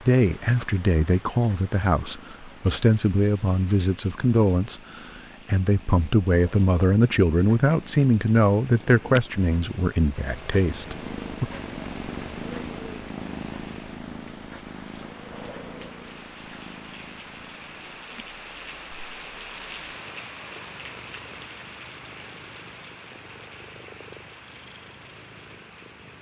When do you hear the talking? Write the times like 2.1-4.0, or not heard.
0.1-11.4.